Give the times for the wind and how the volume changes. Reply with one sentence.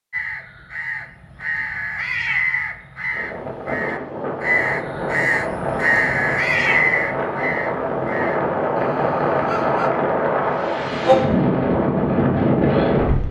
The wind can be heard from 3.1 to 13.2 s, getting louder.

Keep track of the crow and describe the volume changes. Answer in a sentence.
The loudness of the crow goes up, then down.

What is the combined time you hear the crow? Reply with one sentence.
The crow can be heard for 10 seconds in total.